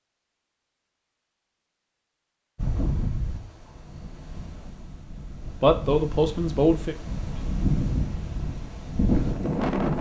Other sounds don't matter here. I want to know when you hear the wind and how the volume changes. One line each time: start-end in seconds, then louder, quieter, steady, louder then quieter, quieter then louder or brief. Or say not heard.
2.5-9.9 quieter then louder.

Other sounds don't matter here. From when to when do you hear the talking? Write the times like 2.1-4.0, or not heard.
5.6-7.0.